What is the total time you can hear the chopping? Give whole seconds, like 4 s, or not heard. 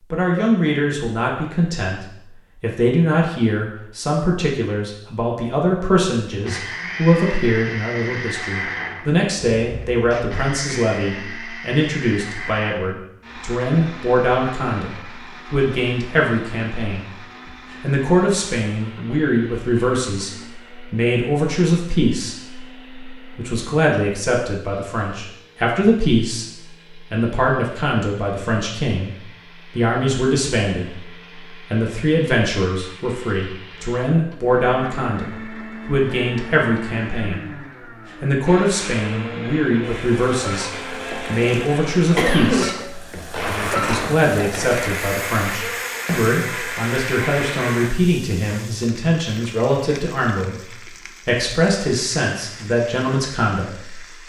not heard.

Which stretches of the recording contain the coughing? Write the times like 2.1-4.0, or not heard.
42.1-42.7.